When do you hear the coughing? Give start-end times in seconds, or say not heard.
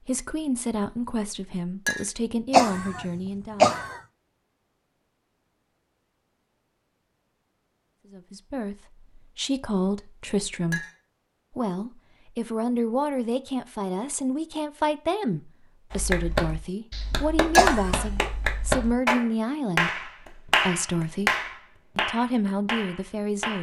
2.5-4.0, 17.6-18.1.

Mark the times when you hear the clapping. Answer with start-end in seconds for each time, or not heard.
15.9-23.5.